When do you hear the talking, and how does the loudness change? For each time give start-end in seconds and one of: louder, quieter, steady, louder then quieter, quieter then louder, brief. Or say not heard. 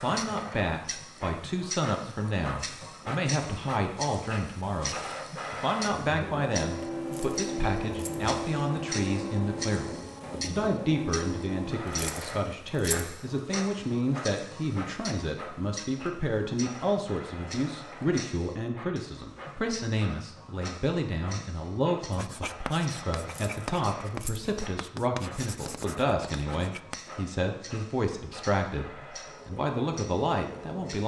0.0-31.0 steady.